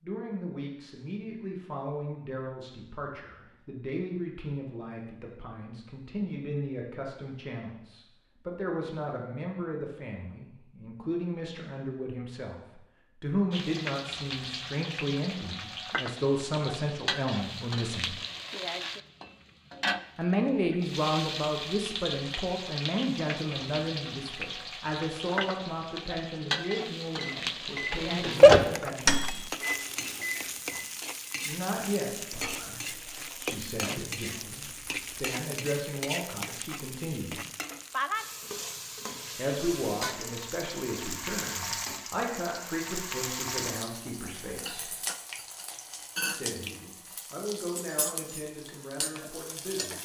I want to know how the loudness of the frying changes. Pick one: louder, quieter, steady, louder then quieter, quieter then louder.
steady.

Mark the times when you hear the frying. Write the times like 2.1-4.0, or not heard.
13.5-49.9.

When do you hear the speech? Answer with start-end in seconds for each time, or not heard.
0.0-18.1, 20.1-29.4, 31.4-37.4, 39.4-45.0, 46.2-49.9.